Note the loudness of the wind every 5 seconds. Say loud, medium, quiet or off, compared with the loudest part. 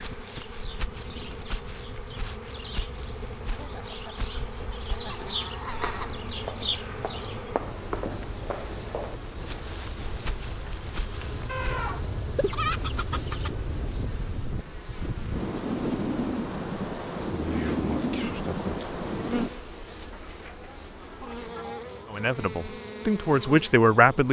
quiet, quiet, medium, loud, off.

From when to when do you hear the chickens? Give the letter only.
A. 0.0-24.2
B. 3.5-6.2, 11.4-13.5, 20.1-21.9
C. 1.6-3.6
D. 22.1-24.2
B.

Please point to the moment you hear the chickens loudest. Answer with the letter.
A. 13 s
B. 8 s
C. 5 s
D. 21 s
A.